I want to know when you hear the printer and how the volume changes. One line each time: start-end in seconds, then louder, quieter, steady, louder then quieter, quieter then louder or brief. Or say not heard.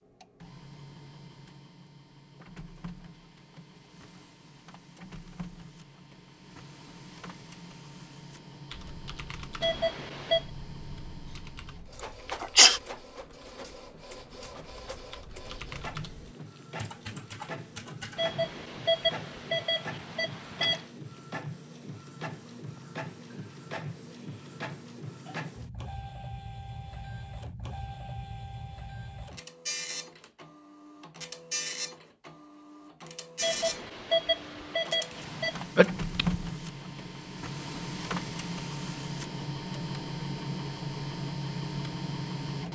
0.0-42.7 louder.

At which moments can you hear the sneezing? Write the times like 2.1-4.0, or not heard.
12.4-12.8, 35.8-36.4.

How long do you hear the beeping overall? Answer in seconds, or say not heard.
6 s.